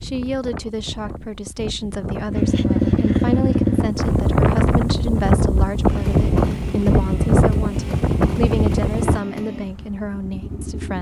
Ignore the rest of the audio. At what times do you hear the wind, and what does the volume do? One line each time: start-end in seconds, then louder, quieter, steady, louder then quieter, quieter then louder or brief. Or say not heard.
0.0-9.2 louder.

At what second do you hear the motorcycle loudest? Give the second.
3 s.